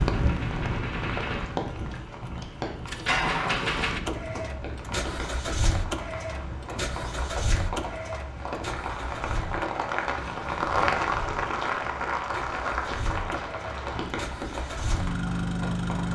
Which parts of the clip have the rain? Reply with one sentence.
You can hear the rain from 0.0 to 16.1 s.